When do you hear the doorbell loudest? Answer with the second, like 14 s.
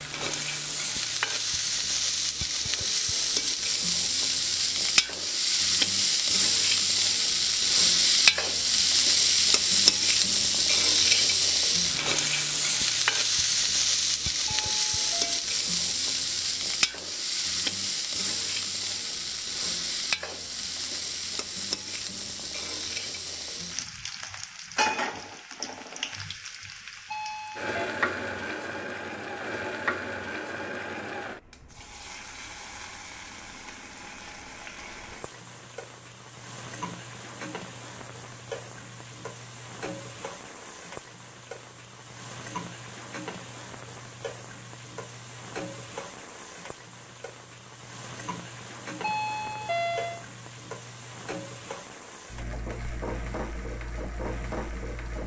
50 s.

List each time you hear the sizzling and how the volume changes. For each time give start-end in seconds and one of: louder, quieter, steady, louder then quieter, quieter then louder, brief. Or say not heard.
0.0-55.2 quieter.